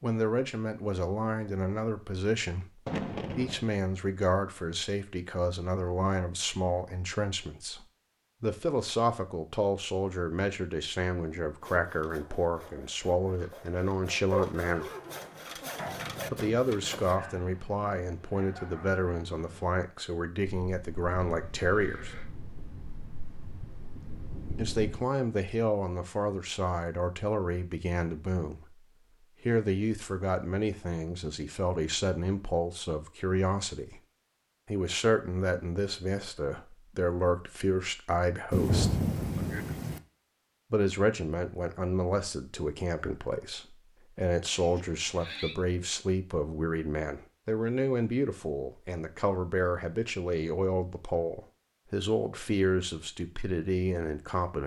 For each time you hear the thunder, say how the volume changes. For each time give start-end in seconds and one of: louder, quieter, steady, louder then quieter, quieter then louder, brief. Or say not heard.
2.9-3.6 brief
20.4-25.1 louder
38.5-40.0 brief.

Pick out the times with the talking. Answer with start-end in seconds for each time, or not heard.
0.0-14.9, 16.3-22.1, 24.6-34.0, 34.6-39.0, 40.7-54.6.